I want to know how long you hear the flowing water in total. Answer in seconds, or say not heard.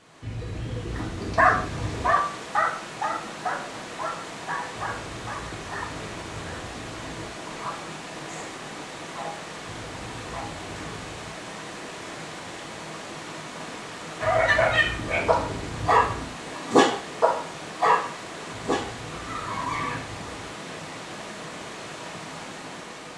23 s.